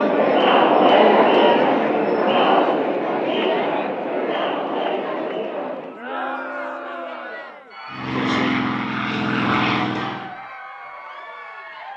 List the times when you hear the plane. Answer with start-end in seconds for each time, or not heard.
7.9-10.3.